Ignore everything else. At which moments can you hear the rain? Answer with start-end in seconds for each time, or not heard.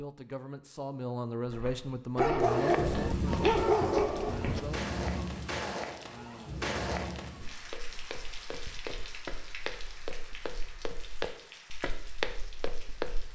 2.4-13.3.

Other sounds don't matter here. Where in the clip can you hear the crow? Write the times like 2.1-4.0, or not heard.
not heard.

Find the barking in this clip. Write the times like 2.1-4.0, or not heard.
2.1-4.6.